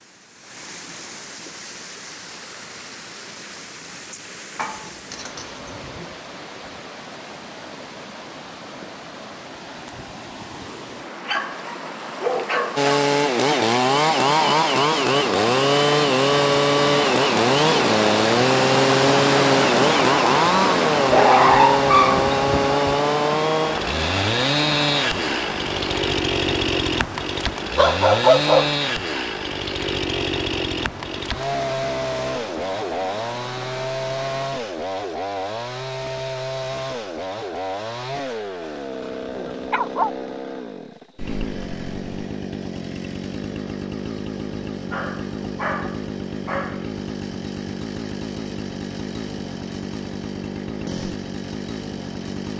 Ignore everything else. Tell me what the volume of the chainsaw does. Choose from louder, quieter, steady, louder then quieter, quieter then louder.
quieter.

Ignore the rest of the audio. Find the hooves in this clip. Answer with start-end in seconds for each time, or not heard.
not heard.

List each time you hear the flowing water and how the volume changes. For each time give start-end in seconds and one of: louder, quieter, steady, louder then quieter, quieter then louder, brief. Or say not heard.
0.0-34.5 louder then quieter.